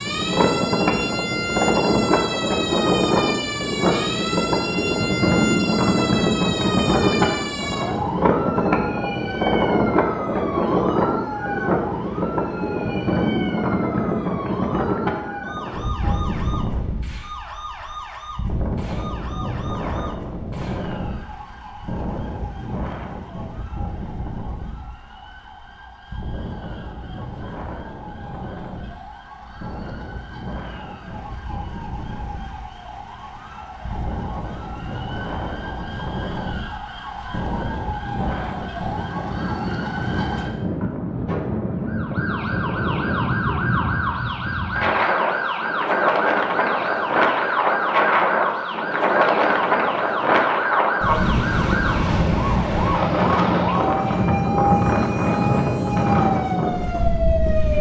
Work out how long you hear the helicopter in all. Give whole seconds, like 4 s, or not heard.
not heard.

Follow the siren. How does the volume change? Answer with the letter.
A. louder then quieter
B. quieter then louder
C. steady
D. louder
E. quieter
B.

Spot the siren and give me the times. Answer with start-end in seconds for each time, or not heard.
0.0-57.7.